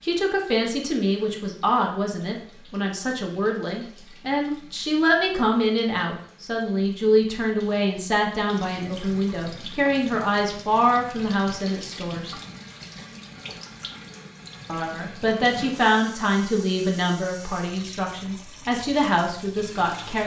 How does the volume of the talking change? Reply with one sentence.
The loudness of the talking stays about the same.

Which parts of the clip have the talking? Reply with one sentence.
The talking can be heard from 0.0 to 12.3 s and from 14.7 to 20.2 s.